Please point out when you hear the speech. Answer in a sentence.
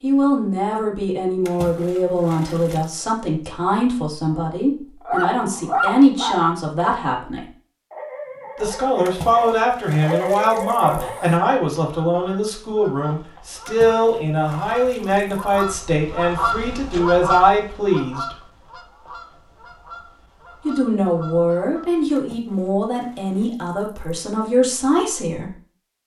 You can hear the speech from 0.0 to 7.5 s, from 8.6 to 18.4 s and from 20.6 to 25.6 s.